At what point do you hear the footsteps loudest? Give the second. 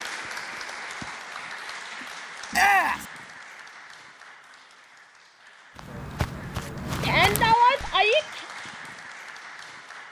7 s.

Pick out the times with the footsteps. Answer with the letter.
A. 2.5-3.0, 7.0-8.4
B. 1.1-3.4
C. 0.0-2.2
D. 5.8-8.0
D.